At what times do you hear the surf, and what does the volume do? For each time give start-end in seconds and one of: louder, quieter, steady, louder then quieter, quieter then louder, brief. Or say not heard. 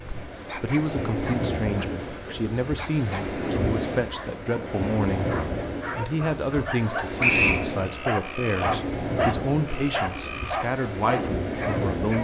0.0-12.2 steady.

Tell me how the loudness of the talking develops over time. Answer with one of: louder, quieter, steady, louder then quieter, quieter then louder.
steady.